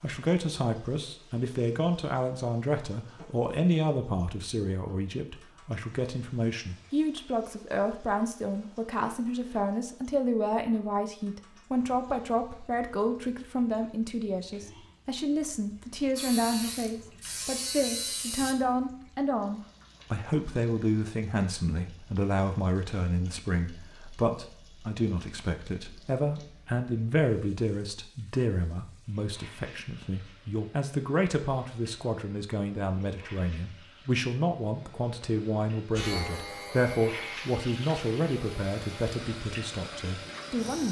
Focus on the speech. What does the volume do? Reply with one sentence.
The volume of the speech stays about the same.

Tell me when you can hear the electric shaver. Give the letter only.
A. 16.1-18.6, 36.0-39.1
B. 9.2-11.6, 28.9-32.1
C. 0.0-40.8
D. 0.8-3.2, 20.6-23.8
A.